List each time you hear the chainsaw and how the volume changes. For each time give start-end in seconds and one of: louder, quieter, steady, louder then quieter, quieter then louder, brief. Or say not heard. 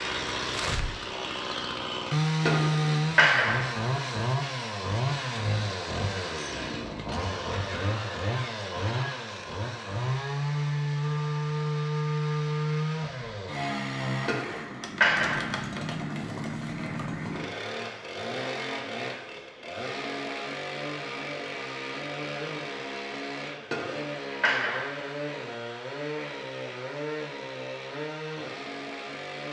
0.0-29.4 quieter.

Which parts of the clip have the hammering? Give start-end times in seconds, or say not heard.
2.5-3.9, 14.2-15.7, 23.7-25.1.